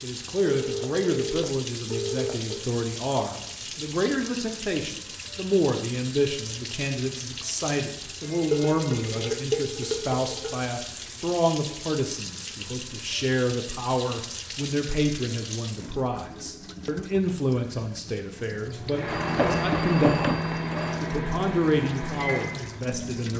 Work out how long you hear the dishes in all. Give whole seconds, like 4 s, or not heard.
2 s.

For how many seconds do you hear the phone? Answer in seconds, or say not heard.
5 s.